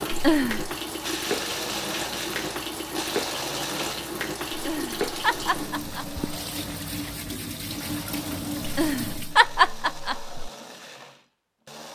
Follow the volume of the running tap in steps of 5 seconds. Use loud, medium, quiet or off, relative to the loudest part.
loud, loud, off.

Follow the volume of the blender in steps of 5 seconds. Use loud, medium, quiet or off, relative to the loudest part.
loud, medium, medium.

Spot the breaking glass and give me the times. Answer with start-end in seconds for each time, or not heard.
not heard.